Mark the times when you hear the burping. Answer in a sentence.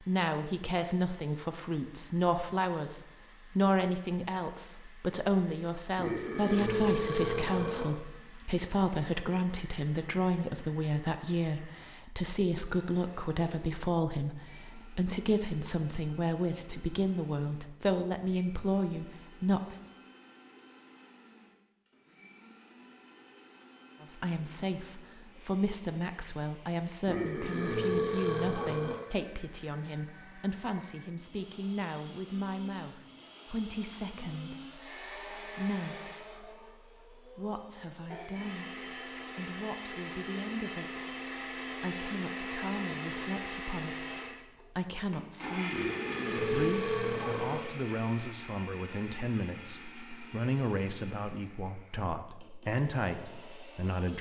The burping can be heard from 6.0 to 7.9 s, from 27.1 to 28.9 s and from 45.7 to 47.6 s.